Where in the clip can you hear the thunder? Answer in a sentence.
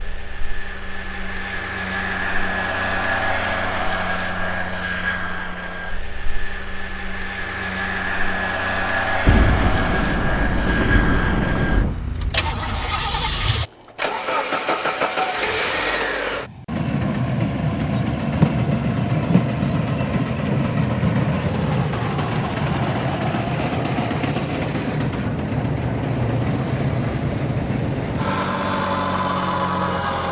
You can hear the thunder from 9.2 to 11.9 s and from 18.4 to 21.9 s.